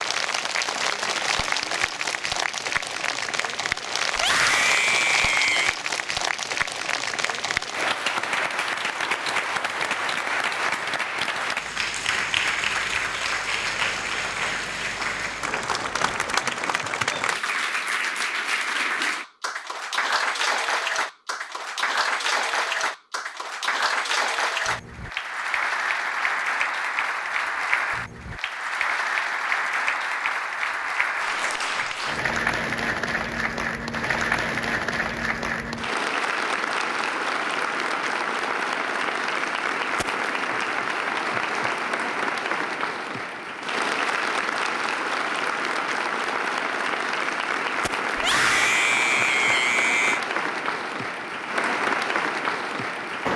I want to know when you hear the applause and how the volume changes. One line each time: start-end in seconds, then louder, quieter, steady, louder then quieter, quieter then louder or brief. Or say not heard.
0.0-53.3 steady.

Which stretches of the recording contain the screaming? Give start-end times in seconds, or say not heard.
4.2-5.8, 48.1-50.2.